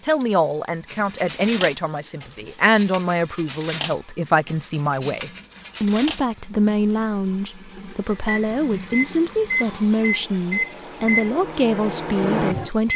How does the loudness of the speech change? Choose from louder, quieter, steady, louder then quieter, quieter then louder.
steady.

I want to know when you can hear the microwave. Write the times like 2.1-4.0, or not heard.
8.1-12.9.